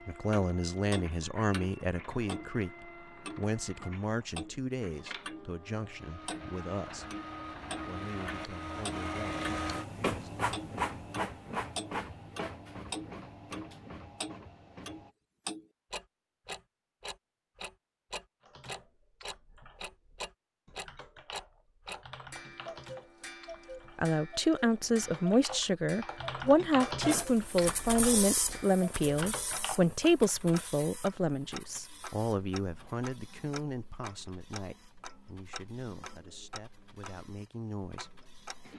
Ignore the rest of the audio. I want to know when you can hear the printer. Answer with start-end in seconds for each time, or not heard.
0.0-15.2, 27.0-38.7.